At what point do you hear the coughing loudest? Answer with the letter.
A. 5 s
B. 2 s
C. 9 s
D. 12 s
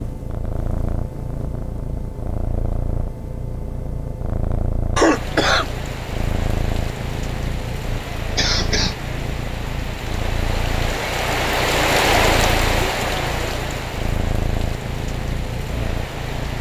A.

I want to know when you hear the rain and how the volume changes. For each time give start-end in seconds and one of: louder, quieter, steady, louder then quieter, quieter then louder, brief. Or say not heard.
5.1-16.5 louder then quieter.